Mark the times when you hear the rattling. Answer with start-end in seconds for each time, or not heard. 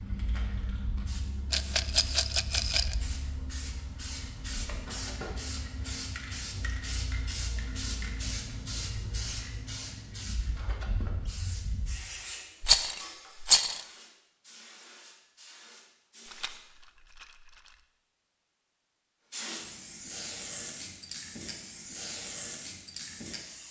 1.5-3.0, 12.6-13.8, 16.2-17.8.